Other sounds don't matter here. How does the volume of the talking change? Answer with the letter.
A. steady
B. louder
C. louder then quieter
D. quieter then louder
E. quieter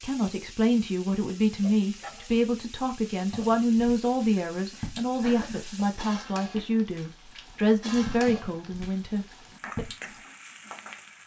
A.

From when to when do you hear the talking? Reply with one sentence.
The talking can be heard from 0.0 to 9.8 s.